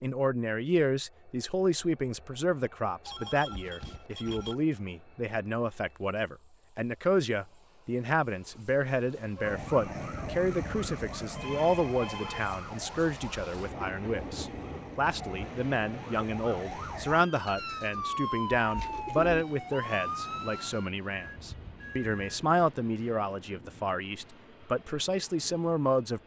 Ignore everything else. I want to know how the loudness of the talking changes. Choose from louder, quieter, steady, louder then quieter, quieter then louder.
steady.